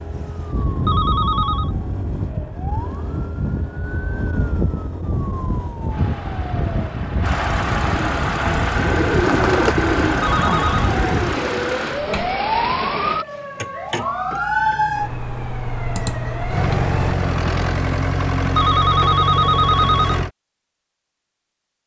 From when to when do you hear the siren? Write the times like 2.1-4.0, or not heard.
0.0-17.1.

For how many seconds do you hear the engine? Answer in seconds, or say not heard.
10 s.